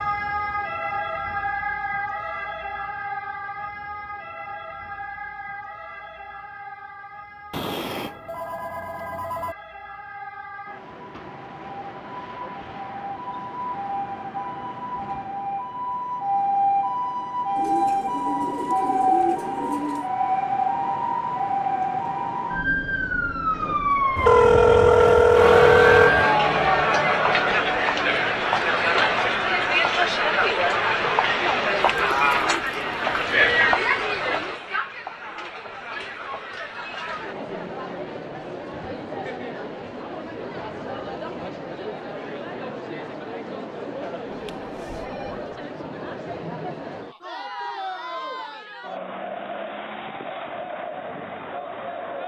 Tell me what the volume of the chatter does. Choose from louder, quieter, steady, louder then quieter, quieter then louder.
quieter.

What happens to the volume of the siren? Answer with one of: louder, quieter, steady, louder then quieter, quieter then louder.
quieter then louder.